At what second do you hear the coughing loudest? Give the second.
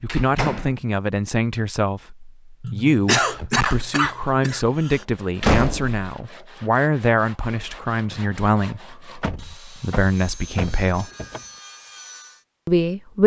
3 s.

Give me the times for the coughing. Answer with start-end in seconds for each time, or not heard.
2.6-5.0.